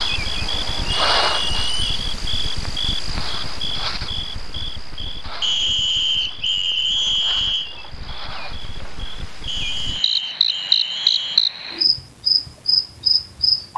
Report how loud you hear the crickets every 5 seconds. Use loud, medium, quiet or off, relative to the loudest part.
medium, quiet, loud.